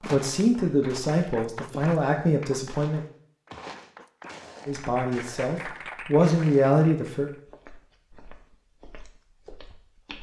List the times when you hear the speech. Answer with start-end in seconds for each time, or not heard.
0.0-3.0, 4.7-7.3.